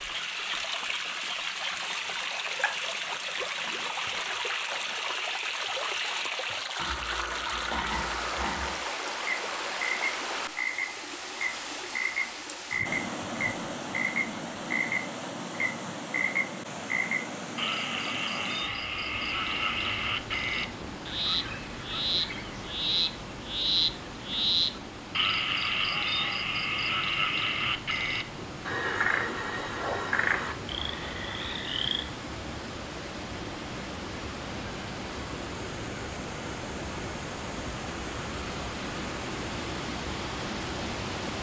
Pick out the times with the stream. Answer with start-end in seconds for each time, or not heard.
0.0-41.3.